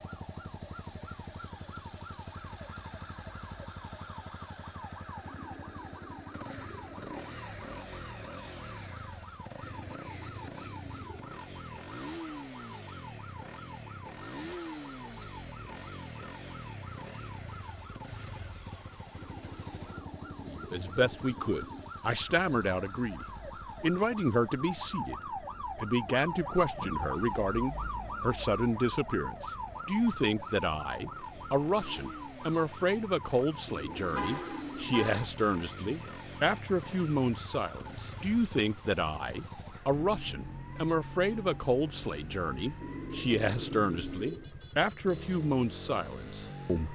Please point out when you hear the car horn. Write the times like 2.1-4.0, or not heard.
34.1-35.3.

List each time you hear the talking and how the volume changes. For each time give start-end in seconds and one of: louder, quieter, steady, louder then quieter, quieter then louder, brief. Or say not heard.
20.4-46.9 steady.